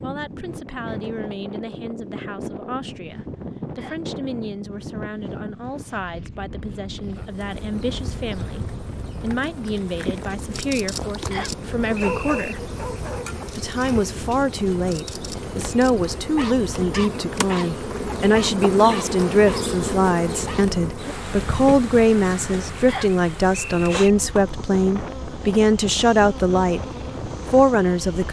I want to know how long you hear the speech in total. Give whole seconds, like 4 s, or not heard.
27 s.